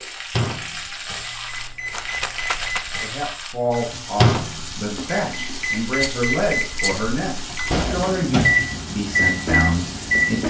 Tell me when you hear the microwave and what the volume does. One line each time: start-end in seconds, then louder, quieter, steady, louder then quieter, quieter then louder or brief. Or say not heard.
0.0-10.4 louder.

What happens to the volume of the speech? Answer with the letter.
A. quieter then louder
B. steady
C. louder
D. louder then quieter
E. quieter
B.